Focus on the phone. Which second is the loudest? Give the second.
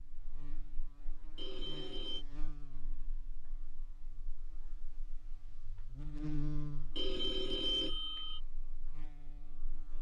8 s.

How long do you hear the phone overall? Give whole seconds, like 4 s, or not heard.
2 s.